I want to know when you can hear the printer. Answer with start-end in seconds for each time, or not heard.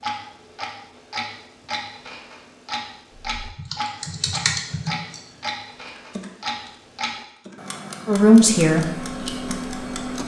8.7-10.2.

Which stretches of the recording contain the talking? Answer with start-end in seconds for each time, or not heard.
8.1-8.8.